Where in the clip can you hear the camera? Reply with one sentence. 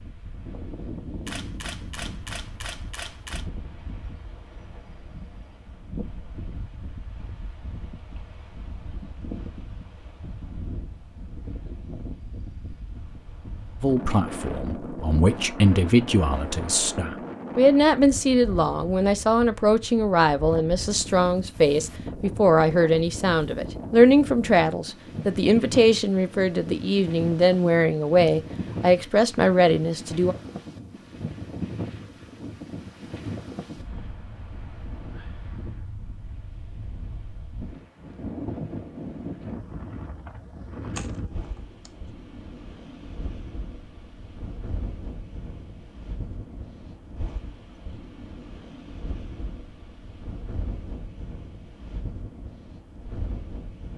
You can hear the camera from 1.2 to 3.5 s and from 41.0 to 42.0 s.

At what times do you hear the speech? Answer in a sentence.
You can hear the speech from 13.8 to 30.4 s.